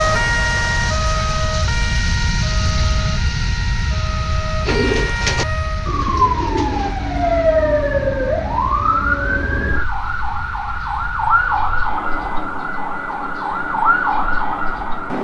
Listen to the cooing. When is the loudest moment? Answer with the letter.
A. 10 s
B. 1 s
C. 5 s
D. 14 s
C.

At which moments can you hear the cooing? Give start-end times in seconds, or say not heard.
4.7-7.0.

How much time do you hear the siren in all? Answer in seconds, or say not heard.
15 s.